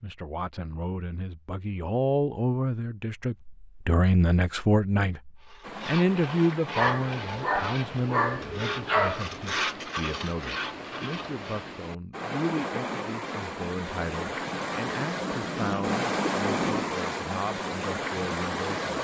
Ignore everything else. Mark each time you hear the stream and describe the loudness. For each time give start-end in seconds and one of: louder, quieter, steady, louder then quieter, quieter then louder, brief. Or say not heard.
5.6-18.9 louder.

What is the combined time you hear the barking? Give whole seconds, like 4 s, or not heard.
3 s.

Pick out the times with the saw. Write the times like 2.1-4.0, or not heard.
5.4-11.7.